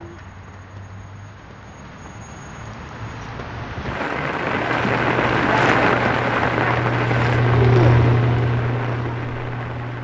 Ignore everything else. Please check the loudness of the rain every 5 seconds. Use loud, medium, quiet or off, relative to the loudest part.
medium, loud.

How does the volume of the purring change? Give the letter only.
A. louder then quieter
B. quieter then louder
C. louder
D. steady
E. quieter
A.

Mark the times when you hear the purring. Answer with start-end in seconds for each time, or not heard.
4.6-9.9.